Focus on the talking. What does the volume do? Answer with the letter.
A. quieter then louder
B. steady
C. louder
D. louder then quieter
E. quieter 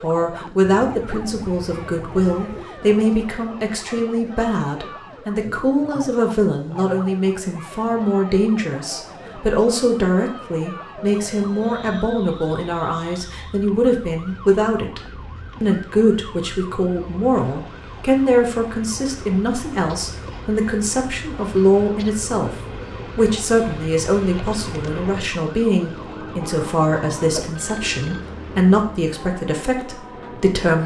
B.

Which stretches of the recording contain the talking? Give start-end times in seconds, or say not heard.
0.0-30.8.